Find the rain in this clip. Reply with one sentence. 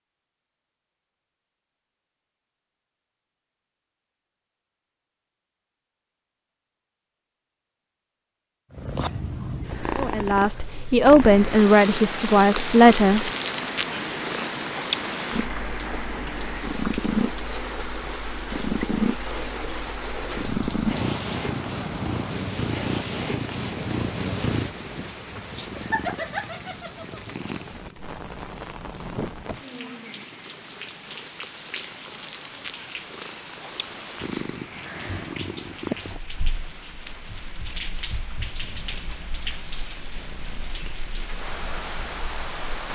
You can hear the rain from 11.2 to 42.9 s.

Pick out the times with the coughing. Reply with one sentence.
The coughing can't be heard in this clip.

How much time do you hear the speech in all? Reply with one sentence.
The speech can be heard for 3 seconds in total.